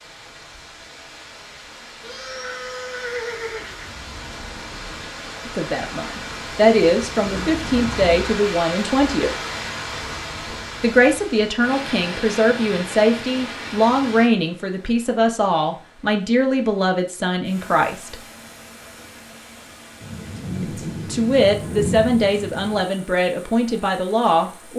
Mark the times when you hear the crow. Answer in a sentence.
You can't hear the crow here.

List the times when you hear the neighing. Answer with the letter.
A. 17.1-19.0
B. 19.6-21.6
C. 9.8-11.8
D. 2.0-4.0
D.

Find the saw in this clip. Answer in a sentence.
The saw can't be heard in this clip.